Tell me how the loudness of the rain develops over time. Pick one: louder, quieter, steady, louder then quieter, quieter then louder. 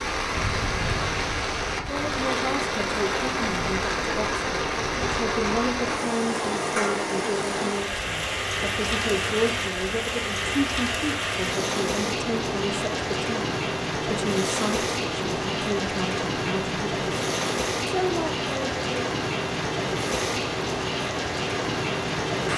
steady.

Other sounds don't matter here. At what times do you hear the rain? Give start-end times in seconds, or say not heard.
0.0-22.5.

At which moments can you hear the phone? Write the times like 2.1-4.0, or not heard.
not heard.